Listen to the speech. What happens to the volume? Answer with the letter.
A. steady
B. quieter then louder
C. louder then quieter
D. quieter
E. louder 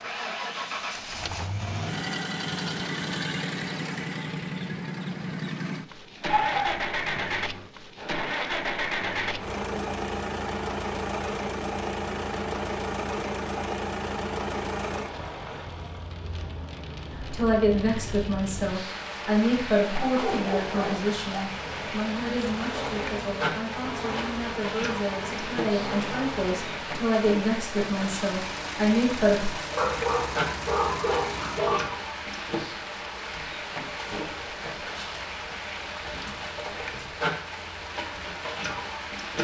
B.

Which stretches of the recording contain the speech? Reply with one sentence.
The speech can be heard from 17.3 to 29.5 s.